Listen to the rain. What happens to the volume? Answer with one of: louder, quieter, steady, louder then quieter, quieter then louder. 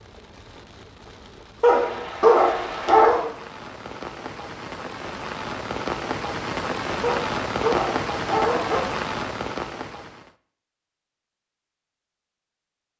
louder.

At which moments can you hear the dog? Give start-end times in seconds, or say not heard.
1.6-3.2, 7.0-8.8.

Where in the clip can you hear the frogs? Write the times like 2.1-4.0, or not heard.
not heard.